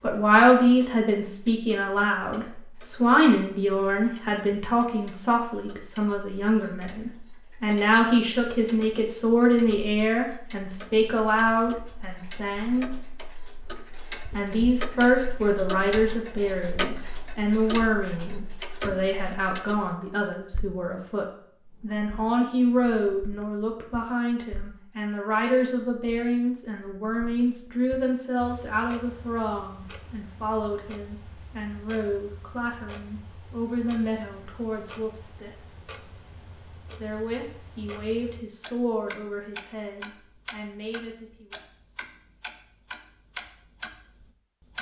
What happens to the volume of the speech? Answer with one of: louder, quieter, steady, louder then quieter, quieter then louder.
quieter.